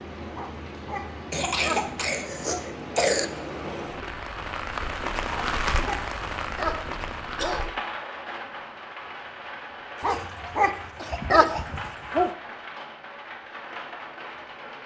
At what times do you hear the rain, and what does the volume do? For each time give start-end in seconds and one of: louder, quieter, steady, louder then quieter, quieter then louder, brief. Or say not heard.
0.0-14.8 louder then quieter.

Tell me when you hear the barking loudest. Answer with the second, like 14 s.
11 s.